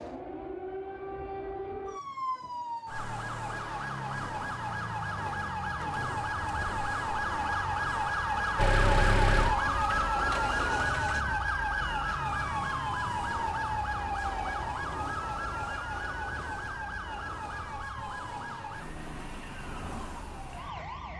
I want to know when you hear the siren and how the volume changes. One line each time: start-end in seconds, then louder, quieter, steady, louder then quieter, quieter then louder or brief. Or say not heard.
0.0-21.1 louder then quieter.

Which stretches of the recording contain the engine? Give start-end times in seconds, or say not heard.
8.6-11.2.